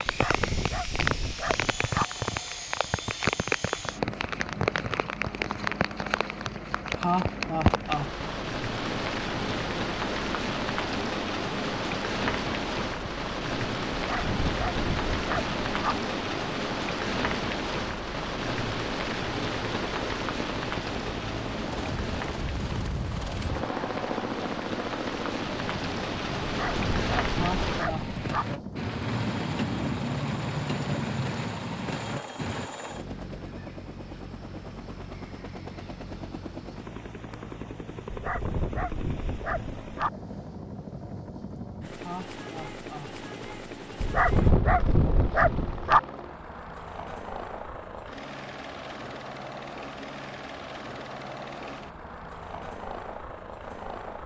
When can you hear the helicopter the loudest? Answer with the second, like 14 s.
24 s.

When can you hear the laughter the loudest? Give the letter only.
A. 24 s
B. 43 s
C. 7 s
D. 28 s
C.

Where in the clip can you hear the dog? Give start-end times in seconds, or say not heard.
0.1-2.0, 13.9-15.9, 26.4-28.4, 38.1-40.1, 44.0-46.0.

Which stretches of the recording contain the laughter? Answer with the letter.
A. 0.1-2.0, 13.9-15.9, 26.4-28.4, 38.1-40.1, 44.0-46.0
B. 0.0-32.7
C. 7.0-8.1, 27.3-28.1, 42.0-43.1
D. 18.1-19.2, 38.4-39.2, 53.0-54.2
C.